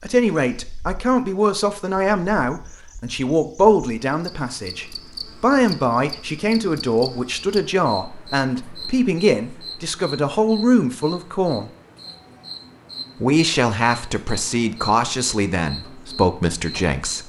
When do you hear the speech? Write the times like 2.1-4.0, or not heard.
0.0-11.7, 13.2-17.2.